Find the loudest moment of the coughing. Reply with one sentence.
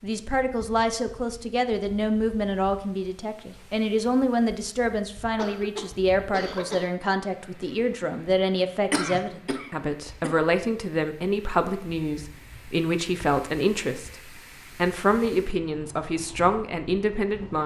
The volume of the coughing peaks at 9 seconds.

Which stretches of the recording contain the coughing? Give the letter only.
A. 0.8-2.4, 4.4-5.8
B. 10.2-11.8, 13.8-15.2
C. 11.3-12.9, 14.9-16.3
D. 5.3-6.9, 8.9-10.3
D.